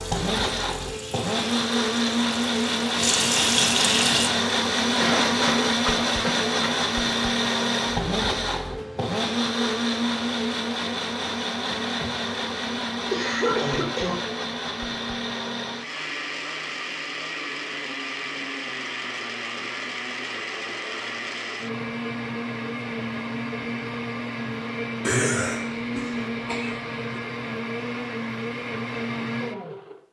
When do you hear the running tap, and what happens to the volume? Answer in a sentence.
You can hear the running tap from 0.0 to 4.3 s, getting louder.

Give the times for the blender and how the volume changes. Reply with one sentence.
The blender can be heard from 0.0 to 30.0 s, getting quieter.